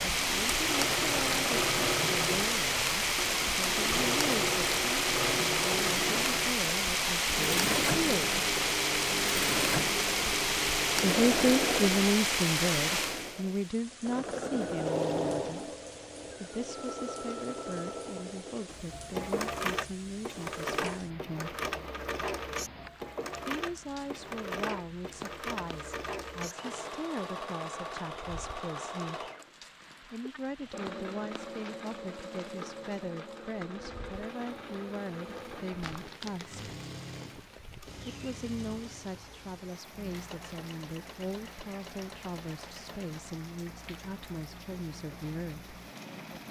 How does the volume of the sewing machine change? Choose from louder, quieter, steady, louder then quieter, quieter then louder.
quieter.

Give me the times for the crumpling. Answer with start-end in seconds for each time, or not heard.
35.8-36.7.